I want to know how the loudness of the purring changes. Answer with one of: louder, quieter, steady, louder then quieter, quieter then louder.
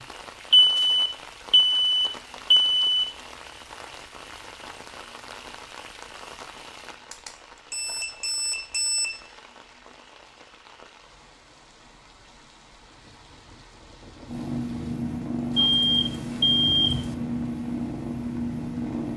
steady.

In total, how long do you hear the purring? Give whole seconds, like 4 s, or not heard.
5 s.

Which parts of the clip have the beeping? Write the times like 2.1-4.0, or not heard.
0.5-3.1, 7.1-9.2, 15.6-17.1.